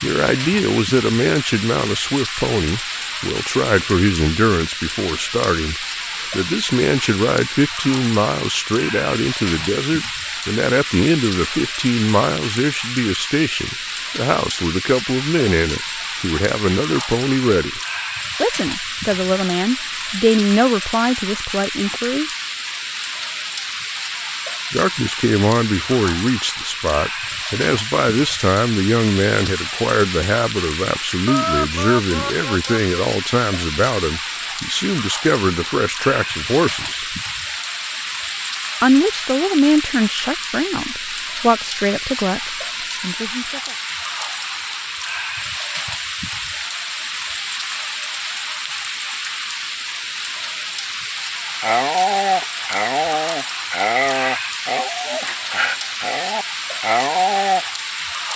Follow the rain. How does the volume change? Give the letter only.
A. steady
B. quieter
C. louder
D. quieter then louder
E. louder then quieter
A.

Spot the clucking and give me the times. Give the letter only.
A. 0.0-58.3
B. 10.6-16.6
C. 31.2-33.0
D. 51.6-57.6
C.